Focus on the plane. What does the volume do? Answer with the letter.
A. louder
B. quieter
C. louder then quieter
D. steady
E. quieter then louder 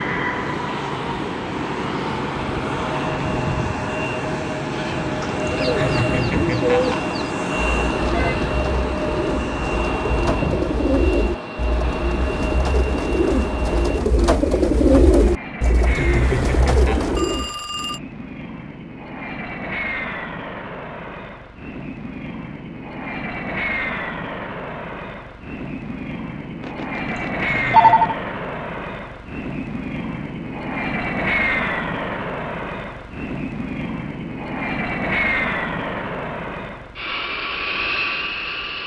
E.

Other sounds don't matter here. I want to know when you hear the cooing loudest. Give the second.
15 s.